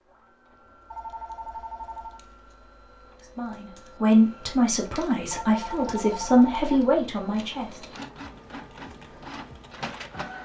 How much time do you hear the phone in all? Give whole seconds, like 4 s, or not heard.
3 s.